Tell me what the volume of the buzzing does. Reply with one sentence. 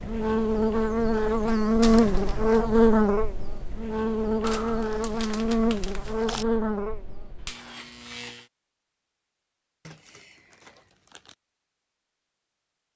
The volume of the buzzing goes down.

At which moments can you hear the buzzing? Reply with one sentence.
You can hear the buzzing from 0.0 to 8.4 s.